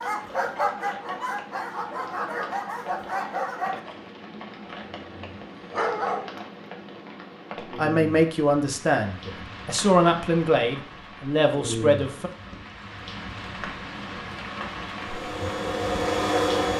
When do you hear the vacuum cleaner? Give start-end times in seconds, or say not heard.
14.9-16.7.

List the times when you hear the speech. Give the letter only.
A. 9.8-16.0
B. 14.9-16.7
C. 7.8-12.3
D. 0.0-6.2
C.